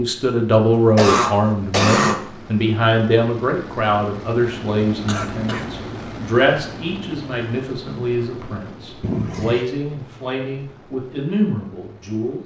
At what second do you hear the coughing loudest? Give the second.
2 s.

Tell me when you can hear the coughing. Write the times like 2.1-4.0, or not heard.
0.8-2.2, 5.0-5.7, 9.0-9.7.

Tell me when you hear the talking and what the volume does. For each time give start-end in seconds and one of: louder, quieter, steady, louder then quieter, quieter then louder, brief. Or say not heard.
0.0-12.4 quieter.